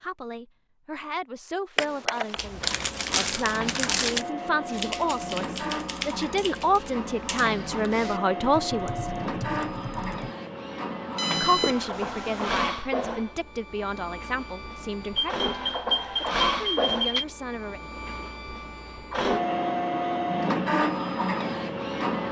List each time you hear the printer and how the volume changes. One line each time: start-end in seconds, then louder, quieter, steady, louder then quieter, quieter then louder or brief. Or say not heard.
2.6-22.2 louder.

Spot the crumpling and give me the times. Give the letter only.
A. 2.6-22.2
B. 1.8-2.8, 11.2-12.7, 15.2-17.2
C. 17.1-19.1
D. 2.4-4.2
D.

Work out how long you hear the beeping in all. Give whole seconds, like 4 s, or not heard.
5 s.